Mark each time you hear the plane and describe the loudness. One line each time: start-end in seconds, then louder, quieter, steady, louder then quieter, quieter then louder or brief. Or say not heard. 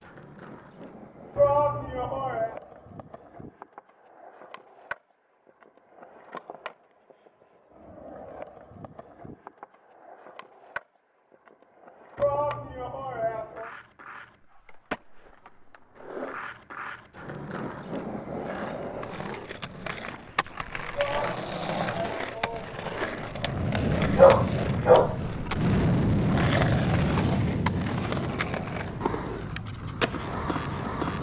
23.3-31.1 quieter.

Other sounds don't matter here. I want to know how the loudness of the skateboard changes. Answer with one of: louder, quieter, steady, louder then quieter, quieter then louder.
louder.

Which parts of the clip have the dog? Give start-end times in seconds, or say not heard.
24.1-25.1.